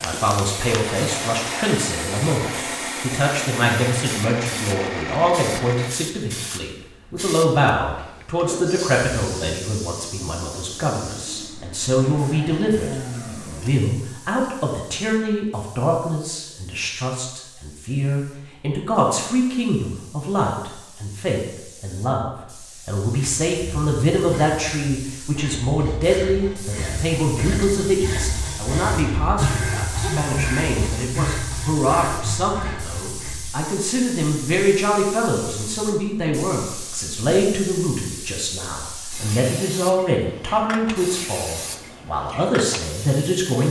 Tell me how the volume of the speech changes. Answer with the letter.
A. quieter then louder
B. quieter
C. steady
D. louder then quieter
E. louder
C.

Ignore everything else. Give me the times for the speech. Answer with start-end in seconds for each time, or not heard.
0.0-43.6.